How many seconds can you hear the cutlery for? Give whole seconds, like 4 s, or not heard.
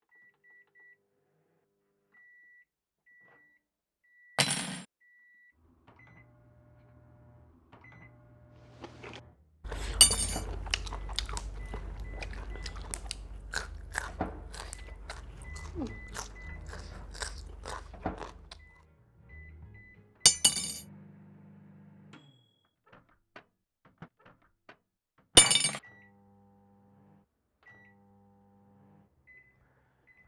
2 s.